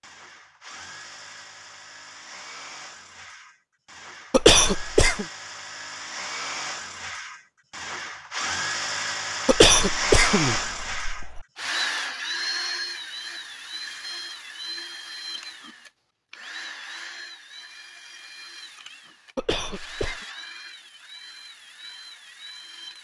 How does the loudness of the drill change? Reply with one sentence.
The loudness of the drill goes up, then down.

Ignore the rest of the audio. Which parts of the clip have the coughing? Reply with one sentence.
The coughing can be heard from 4.3 to 5.2 s, from 9.4 to 11.4 s and from 19.4 to 20.2 s.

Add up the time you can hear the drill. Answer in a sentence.
The drill can be heard for 23 seconds in total.